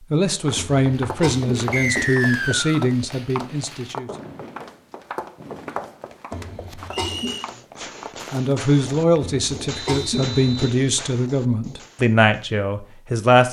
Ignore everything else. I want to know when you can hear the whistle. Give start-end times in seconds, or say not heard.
1.7-2.9, 6.9-7.5, 9.7-10.8.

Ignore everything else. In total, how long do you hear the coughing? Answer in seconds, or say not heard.
4 s.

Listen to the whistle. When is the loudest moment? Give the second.
2 s.